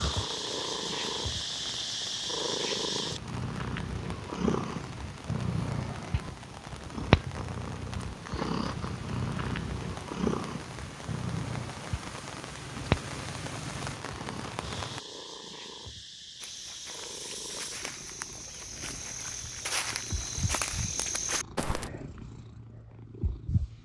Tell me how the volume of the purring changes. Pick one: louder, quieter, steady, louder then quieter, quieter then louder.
quieter.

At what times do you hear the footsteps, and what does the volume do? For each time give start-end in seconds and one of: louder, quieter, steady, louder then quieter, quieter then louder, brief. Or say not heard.
16.4-21.9 louder.